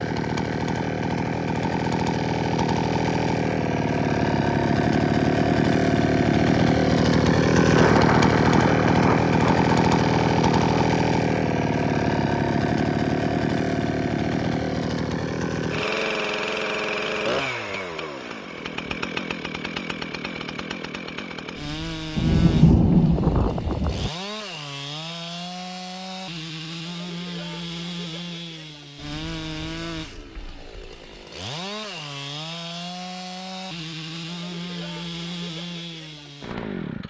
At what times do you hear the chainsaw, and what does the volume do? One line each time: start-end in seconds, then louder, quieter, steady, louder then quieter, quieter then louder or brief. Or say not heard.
0.0-37.0 quieter.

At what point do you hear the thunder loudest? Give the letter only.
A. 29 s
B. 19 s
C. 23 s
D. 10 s
C.